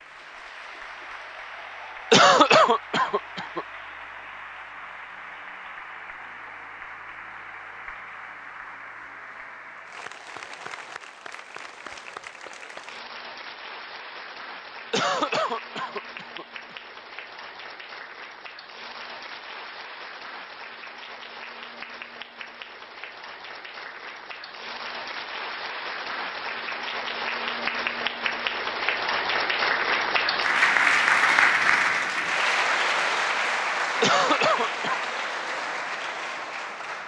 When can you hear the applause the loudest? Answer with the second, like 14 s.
31 s.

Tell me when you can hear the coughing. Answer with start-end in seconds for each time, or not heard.
2.1-3.6, 14.9-16.8, 34.0-35.0.